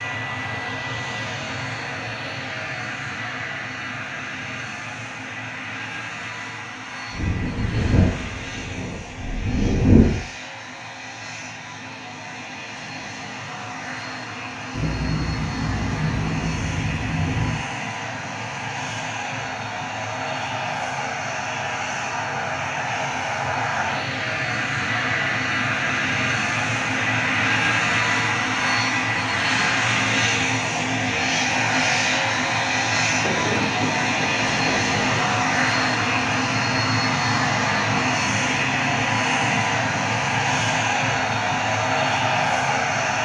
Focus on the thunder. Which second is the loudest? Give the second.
10 s.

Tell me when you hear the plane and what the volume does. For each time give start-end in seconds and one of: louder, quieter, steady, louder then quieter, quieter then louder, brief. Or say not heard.
0.0-43.1 louder.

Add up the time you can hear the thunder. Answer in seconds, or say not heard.
8 s.